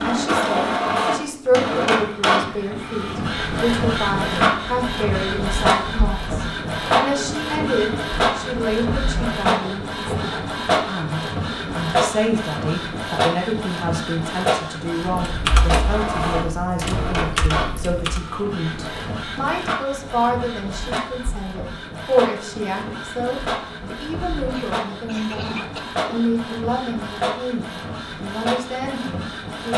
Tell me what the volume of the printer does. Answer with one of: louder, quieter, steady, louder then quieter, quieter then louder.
quieter.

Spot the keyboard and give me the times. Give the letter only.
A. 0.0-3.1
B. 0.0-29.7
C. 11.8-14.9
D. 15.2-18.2
D.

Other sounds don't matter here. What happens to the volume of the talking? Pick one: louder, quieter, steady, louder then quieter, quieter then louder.
steady.